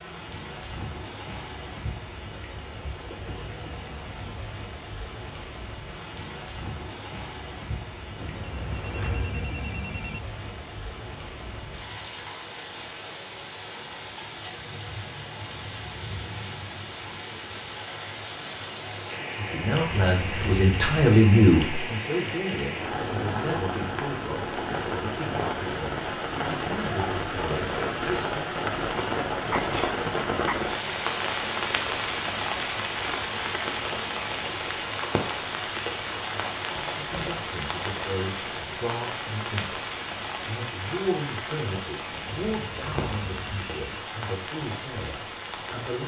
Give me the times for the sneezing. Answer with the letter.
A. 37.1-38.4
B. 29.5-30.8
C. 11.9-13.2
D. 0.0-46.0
B.